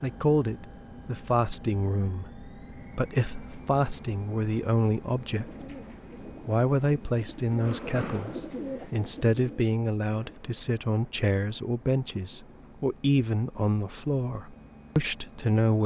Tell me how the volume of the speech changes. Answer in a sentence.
The volume of the speech stays about the same.